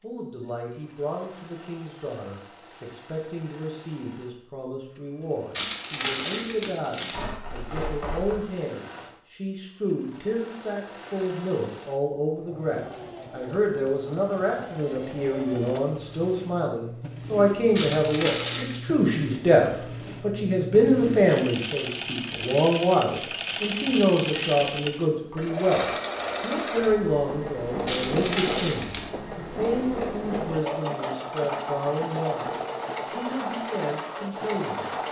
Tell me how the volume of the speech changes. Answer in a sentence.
The volume of the speech goes up, then down.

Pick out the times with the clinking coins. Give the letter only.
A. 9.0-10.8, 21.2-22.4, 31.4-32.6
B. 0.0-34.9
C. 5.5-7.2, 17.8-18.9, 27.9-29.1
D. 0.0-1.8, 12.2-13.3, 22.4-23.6
C.